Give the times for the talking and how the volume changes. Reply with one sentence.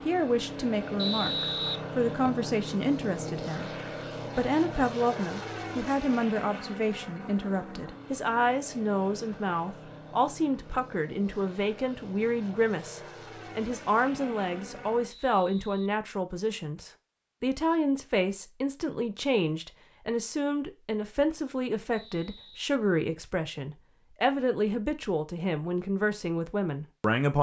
You can hear the talking from 0.0 to 27.3 s, at a steady volume.